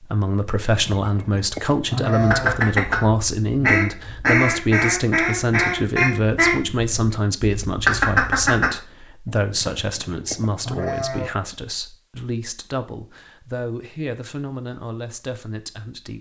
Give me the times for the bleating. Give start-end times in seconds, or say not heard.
0.7-2.5, 9.2-11.3.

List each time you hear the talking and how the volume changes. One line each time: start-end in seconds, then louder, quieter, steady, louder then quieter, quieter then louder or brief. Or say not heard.
0.0-16.1 quieter.